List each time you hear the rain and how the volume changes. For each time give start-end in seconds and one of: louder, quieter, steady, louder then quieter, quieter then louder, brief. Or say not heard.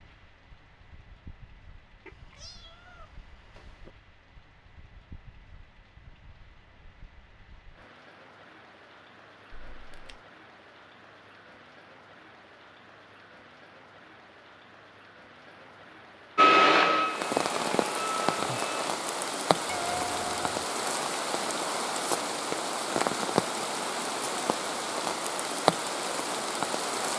0.0-27.1 louder.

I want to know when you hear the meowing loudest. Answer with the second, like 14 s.
20 s.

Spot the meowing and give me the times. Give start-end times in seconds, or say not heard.
2.0-3.9, 9.5-10.2, 19.6-20.6.